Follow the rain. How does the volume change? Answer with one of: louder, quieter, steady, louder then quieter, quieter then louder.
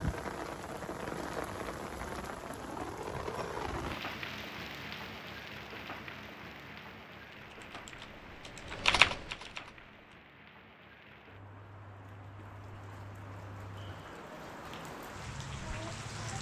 quieter then louder.